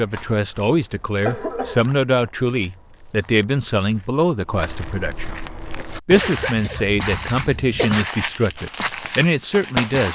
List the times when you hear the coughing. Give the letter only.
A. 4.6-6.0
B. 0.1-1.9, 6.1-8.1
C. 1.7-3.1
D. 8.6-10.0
B.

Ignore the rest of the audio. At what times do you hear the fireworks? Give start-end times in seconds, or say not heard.
8.6-10.0.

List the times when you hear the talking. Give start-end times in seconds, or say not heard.
0.0-10.0.